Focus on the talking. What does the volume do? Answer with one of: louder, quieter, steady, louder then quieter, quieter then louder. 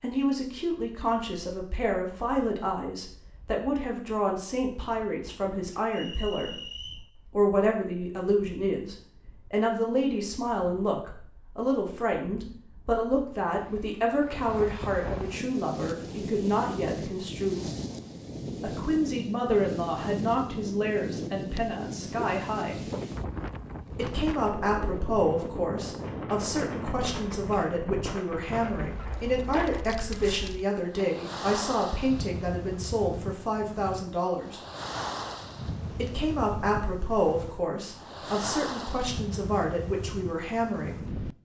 steady.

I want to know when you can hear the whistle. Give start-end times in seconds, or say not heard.
5.9-7.0.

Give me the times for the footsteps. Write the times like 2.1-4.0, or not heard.
21.5-23.1.